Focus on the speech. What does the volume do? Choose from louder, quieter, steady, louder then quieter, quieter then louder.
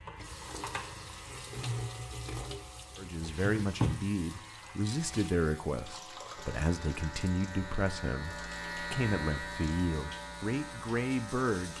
steady.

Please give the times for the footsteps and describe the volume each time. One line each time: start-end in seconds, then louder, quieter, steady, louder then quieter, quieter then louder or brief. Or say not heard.
not heard.